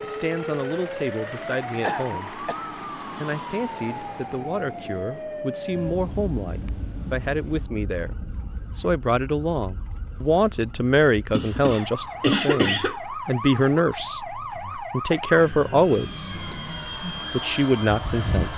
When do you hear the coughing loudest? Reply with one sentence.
The volume of the coughing peaks at 12 seconds.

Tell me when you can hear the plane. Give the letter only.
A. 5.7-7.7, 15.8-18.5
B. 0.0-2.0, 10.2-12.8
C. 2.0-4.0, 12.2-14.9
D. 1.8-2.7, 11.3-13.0
A.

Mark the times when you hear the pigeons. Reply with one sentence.
You can't hear the pigeons here.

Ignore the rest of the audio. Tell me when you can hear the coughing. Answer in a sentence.
The coughing can be heard from 1.8 to 2.7 s and from 11.3 to 13.0 s.